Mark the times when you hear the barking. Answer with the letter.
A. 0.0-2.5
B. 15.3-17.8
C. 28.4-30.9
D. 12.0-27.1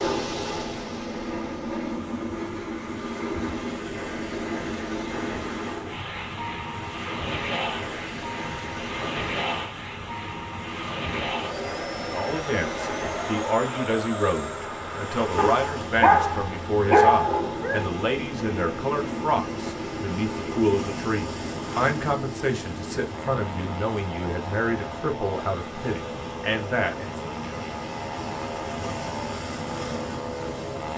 B.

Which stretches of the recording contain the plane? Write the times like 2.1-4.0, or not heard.
0.0-30.9.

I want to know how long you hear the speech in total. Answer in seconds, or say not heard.
15 s.